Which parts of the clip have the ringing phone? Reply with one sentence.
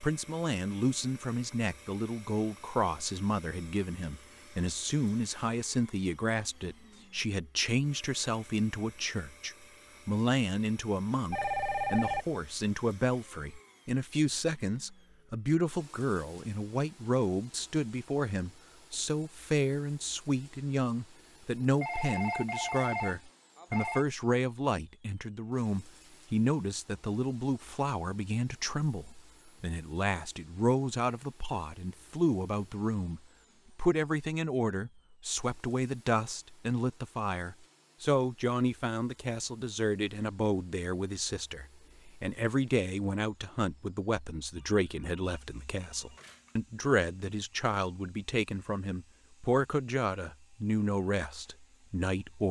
You can hear the ringing phone from 11.3 to 12.2 s, from 21.6 to 24.1 s and from 44.5 to 46.6 s.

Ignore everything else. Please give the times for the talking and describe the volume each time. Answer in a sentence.
You can hear the talking from 0.0 to 52.4 s, at a steady volume.